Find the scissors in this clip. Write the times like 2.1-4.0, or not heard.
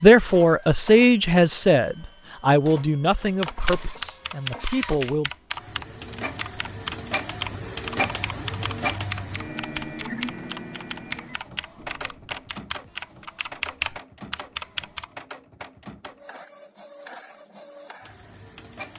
not heard.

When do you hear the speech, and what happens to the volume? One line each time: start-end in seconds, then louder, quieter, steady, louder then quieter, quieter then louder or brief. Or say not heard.
0.0-5.3 quieter.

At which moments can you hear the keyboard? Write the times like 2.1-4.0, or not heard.
3.2-15.1.